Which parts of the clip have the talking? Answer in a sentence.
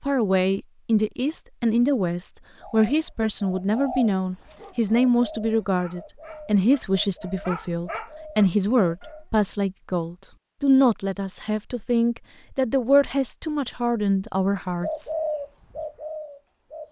You can hear the talking from 0.0 to 15.1 s.